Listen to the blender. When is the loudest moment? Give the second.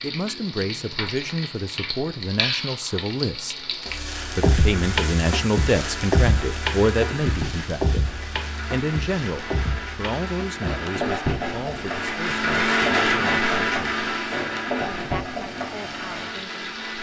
13 s.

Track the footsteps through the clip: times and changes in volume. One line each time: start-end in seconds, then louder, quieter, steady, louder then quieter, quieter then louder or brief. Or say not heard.
not heard.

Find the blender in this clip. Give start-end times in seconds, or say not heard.
3.9-16.9.